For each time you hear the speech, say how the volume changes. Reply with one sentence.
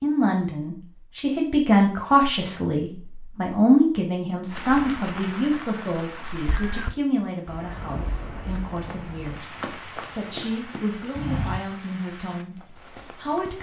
The speech can be heard from 0.0 to 13.5 s, getting quieter.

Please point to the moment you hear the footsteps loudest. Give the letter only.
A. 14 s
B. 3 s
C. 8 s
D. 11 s
D.